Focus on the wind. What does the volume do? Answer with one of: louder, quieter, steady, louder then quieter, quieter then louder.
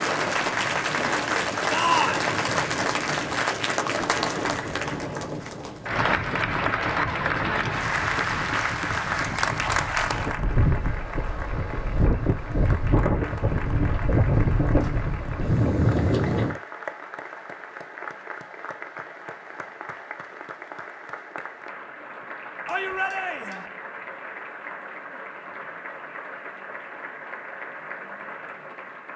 louder.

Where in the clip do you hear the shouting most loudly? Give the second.
2 s.